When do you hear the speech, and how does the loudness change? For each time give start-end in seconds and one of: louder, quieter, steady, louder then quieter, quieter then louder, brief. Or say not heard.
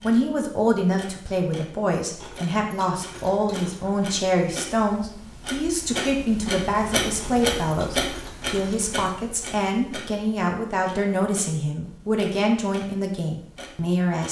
0.0-14.2 steady.